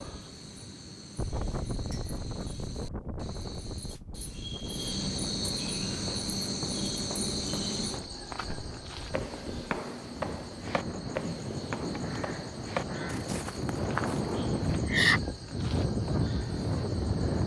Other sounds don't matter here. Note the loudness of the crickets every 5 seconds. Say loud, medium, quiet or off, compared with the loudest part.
medium, loud, medium, loud.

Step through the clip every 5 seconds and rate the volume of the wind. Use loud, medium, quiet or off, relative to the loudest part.
medium, quiet, loud, loud.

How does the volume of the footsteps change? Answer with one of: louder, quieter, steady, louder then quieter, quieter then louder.
louder.